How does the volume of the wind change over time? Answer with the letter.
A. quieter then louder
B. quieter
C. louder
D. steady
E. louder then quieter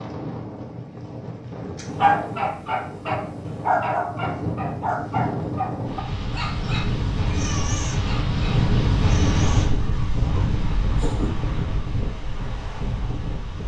E.